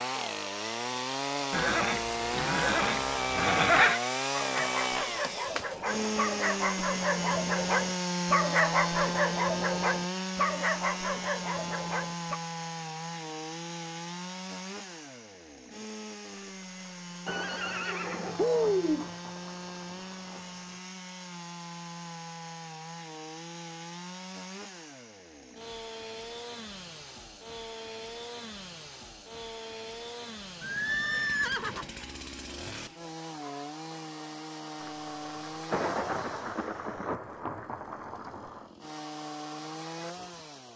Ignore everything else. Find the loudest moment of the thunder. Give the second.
36 s.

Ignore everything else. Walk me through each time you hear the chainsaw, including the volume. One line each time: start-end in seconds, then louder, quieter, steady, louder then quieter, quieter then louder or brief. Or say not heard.
0.0-40.7 quieter.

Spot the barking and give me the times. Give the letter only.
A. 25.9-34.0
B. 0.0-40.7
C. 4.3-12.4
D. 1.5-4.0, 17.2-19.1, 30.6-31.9
C.